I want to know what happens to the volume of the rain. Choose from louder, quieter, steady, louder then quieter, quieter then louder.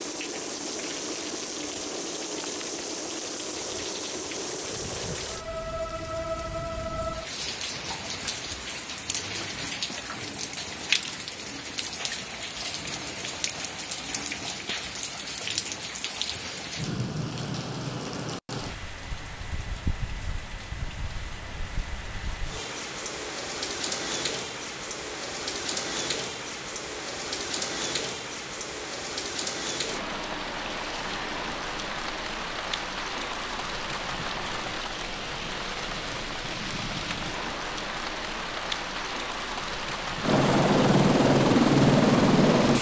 steady.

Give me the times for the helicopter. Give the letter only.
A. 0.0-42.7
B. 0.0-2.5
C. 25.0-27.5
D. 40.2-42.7
D.